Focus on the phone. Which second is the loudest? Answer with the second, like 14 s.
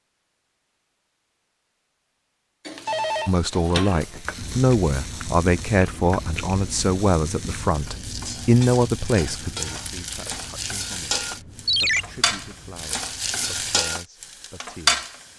12 s.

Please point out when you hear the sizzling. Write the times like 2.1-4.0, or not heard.
2.6-15.3.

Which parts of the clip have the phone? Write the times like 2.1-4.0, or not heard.
2.9-4.2, 11.7-12.1.